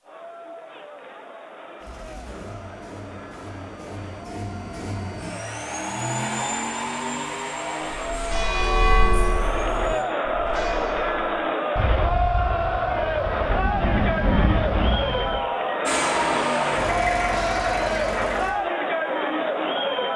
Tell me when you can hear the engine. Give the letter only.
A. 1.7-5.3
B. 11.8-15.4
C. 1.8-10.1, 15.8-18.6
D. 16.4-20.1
C.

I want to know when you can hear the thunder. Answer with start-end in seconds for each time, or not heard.
11.8-15.4.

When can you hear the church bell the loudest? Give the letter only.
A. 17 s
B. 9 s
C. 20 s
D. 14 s
B.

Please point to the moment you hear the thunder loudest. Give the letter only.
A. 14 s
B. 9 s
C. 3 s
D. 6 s
A.